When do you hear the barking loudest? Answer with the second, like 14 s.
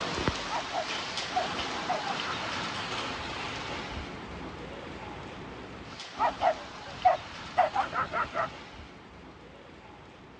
7 s.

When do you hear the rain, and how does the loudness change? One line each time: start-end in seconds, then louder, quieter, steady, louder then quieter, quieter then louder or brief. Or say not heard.
0.0-10.3 quieter.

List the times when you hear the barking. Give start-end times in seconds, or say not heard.
0.5-2.5, 6.2-8.5.